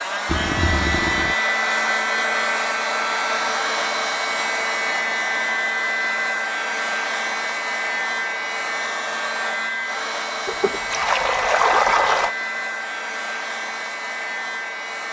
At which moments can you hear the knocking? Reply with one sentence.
You can't hear the knocking here.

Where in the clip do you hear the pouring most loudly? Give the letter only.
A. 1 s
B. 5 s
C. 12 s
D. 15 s
C.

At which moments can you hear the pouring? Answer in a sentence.
The pouring can be heard from 0.2 to 1.4 s and from 10.4 to 12.3 s.